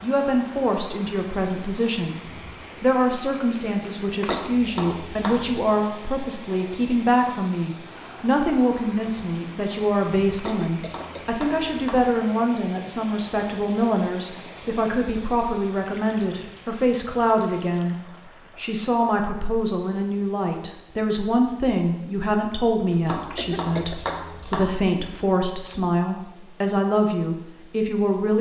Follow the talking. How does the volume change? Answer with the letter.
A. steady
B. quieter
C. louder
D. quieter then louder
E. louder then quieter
A.